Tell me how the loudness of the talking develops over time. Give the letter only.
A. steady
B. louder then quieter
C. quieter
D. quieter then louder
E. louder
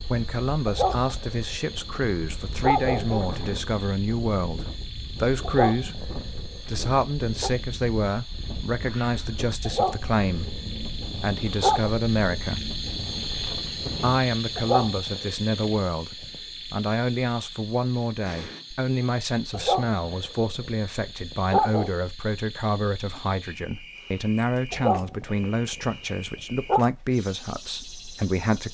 A.